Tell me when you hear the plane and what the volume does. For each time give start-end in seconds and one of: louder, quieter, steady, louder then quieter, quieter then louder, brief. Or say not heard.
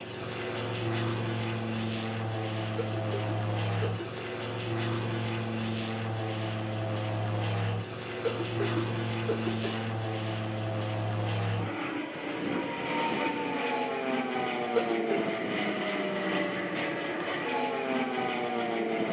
0.0-19.0 steady.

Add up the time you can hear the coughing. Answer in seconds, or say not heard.
4 s.